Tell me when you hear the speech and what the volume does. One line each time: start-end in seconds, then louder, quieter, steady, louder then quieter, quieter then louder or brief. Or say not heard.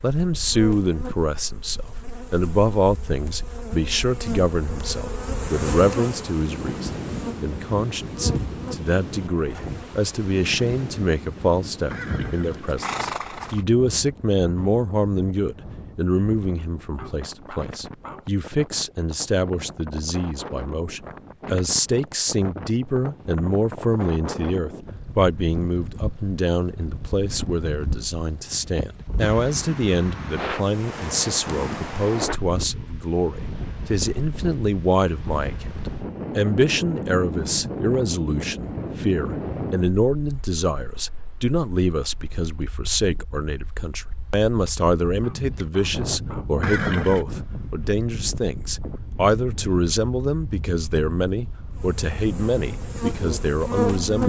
0.0-54.2 steady.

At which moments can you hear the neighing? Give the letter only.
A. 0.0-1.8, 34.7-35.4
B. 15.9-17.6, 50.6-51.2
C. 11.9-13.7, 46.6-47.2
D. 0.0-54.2
C.